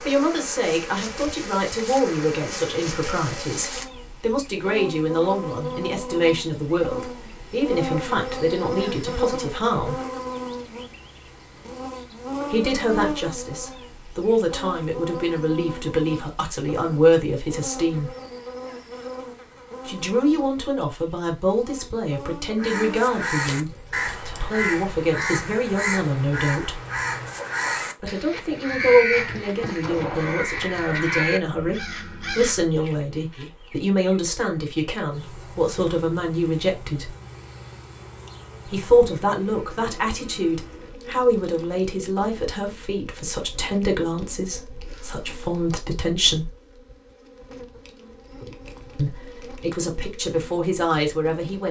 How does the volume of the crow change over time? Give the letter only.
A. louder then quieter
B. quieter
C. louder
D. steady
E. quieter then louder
D.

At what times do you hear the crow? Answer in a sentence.
You can hear the crow from 22.6 to 32.8 s.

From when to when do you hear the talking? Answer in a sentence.
The talking can be heard from 0.0 to 10.0 s, from 12.5 to 18.1 s, from 19.9 to 26.8 s, from 28.0 to 37.1 s, from 38.6 to 46.5 s and from 49.0 to 51.6 s.